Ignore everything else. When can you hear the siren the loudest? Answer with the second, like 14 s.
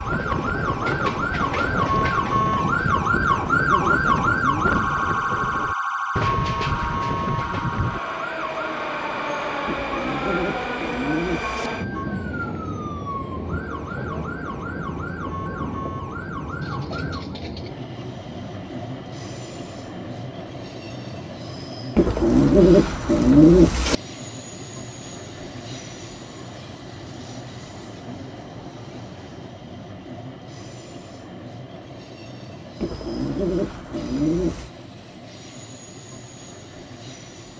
4 s.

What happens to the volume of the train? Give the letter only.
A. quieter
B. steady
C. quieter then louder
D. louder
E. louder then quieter
A.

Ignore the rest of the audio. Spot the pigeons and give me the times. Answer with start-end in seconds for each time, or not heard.
3.3-4.8, 9.7-11.7, 21.9-23.9, 32.8-34.7.